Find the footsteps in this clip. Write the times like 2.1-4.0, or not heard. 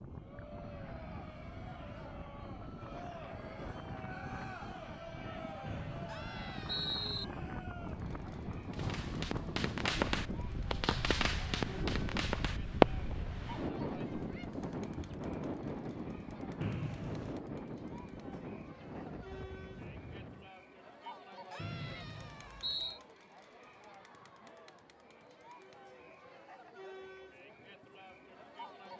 not heard.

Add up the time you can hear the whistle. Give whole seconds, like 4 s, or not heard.
4 s.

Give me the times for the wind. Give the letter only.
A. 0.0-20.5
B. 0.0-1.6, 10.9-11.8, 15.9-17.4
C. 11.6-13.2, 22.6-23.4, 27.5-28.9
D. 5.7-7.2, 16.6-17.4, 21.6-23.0
A.